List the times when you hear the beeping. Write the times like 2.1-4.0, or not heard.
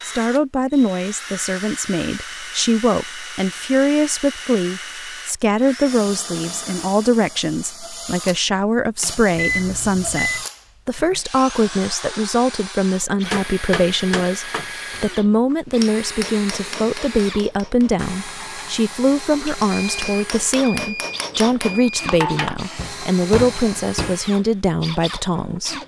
9.3-10.4, 19.4-22.1.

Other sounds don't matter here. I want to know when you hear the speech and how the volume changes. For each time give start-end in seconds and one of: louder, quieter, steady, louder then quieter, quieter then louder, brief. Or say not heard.
0.1-25.8 steady.